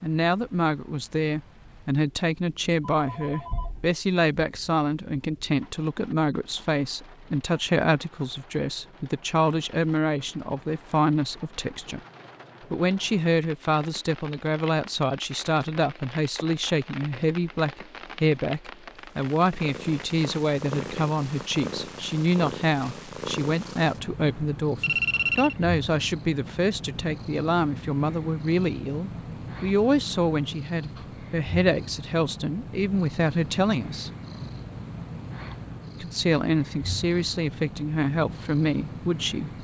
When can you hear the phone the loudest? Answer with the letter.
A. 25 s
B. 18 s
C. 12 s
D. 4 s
A.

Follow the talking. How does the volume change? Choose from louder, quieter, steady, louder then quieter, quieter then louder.
steady.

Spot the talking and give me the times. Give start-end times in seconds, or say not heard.
0.0-12.0, 12.7-34.1, 36.0-39.6.